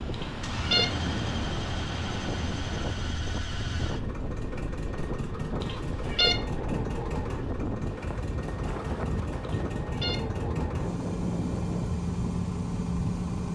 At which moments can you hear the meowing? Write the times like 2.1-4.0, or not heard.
0.1-0.8, 5.6-6.3, 9.4-10.2.